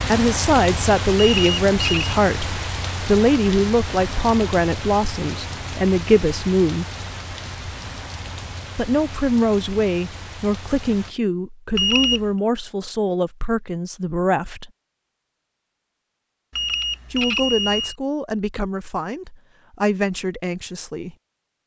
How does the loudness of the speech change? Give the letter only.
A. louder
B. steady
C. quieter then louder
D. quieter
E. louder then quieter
D.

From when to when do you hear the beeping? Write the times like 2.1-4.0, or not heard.
1.1-2.2, 11.8-12.3, 16.5-17.9.